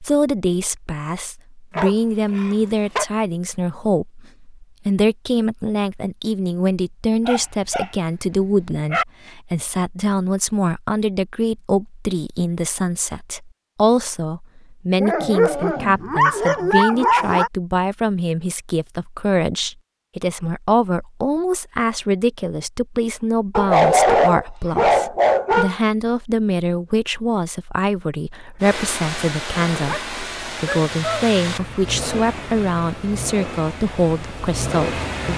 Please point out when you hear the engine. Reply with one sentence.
You can hear the engine from 28.6 to 35.3 s.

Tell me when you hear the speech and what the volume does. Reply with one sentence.
The speech can be heard from 0.0 to 35.0 s, at a steady volume.